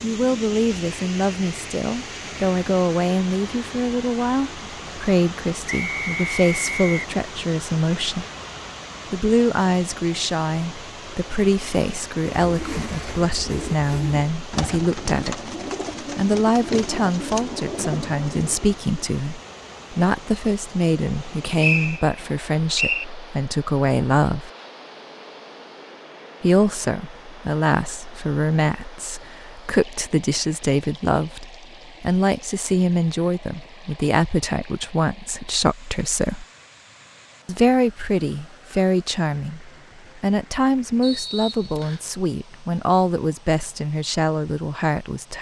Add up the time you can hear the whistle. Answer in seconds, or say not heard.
4 s.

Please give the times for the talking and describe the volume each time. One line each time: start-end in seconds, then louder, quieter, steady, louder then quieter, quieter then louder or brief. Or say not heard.
0.0-8.2 steady
9.1-24.5 steady
26.4-36.5 steady
37.5-45.3 steady.